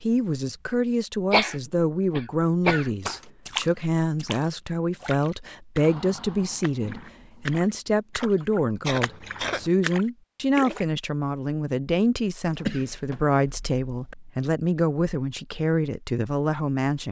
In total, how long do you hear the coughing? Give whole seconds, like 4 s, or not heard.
4 s.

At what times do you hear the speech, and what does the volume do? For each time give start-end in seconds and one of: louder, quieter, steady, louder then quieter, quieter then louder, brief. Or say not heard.
0.0-17.0 steady.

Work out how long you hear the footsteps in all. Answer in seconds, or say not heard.
not heard.